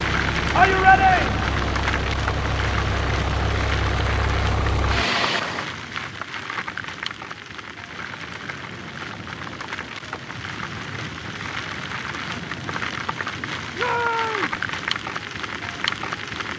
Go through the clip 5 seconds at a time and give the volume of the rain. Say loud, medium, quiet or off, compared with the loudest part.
loud, medium, loud, loud.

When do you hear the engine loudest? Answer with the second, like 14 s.
5 s.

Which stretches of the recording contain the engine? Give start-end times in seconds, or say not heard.
0.0-5.7.